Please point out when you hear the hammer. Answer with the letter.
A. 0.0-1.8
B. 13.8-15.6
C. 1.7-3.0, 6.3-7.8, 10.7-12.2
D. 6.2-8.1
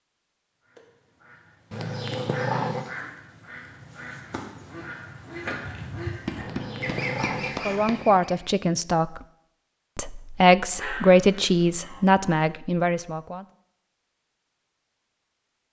D.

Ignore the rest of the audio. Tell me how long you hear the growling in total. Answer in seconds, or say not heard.
4 s.